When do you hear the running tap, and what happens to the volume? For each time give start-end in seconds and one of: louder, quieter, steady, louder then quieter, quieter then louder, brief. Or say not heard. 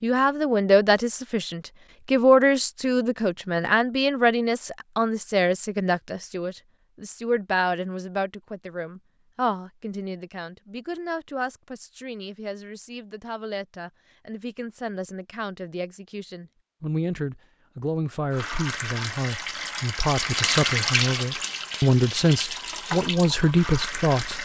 18.3-24.4 louder then quieter.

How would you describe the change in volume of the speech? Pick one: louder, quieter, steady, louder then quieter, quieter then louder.
quieter then louder.